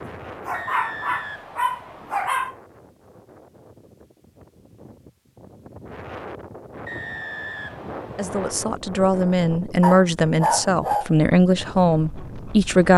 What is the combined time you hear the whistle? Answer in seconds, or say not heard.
3 s.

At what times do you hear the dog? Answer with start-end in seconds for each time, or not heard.
0.5-2.5, 9.8-11.1.